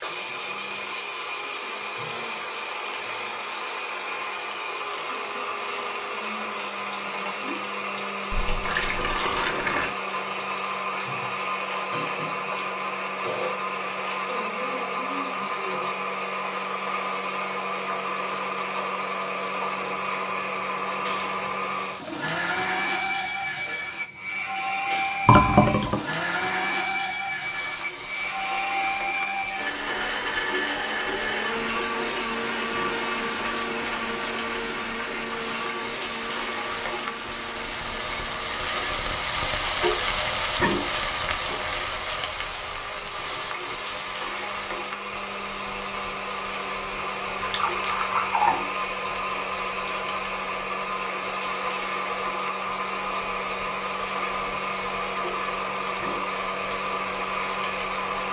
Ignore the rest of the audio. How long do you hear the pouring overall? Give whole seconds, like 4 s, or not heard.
4 s.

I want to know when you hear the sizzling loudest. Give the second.
40 s.